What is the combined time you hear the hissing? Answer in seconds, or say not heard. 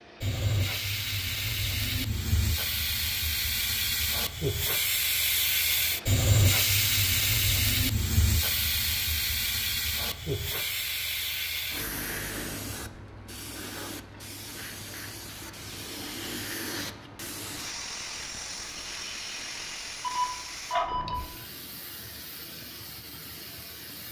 24 s.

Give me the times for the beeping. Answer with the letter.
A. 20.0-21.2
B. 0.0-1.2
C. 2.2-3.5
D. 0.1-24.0
A.